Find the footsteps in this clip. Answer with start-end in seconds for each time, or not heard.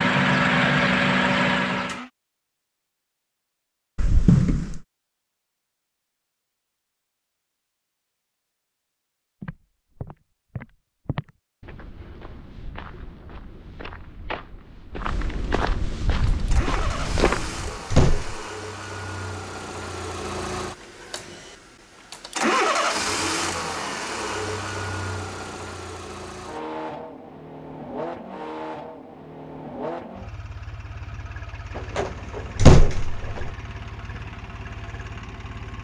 9.4-17.8.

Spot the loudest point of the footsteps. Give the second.
17 s.